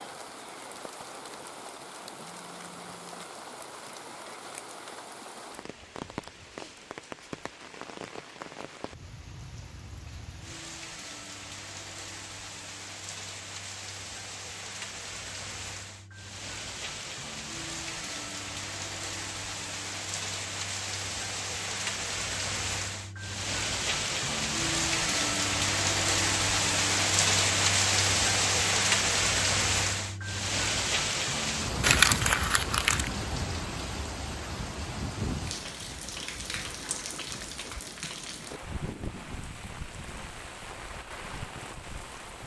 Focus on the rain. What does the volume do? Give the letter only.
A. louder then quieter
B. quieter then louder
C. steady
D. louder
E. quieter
A.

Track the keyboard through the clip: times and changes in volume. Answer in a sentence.
You can't hear the keyboard here.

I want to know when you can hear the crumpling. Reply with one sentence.
You can hear the crumpling from 31.8 to 33.1 s.